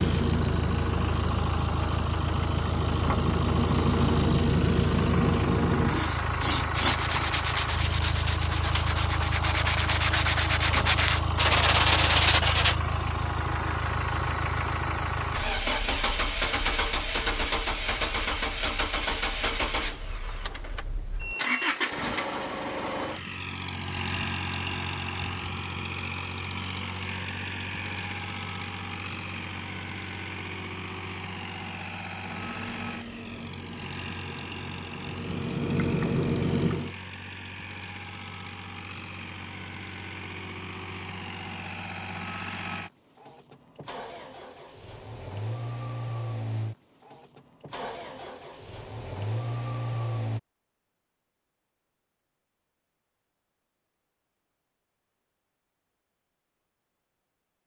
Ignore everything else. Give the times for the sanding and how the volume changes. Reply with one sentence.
The sanding can be heard from 6.8 to 12.8 s, getting louder.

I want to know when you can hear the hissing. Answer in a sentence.
You can hear the hissing from 0.0 to 7.4 s and from 32.1 to 37.0 s.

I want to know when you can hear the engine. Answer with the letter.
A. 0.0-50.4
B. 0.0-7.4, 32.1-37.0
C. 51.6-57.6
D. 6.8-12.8
A.